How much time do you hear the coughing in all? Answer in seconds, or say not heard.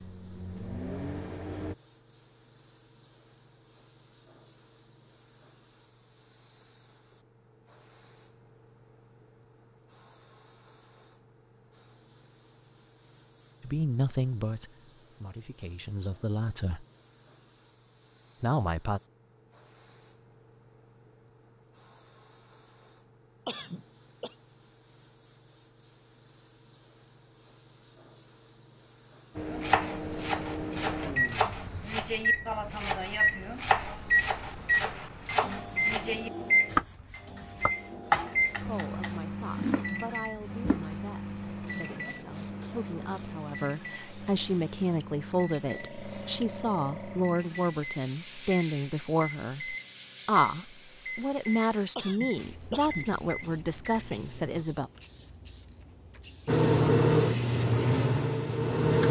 2 s.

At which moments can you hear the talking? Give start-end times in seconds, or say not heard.
13.6-16.9, 18.4-19.0, 38.6-54.9.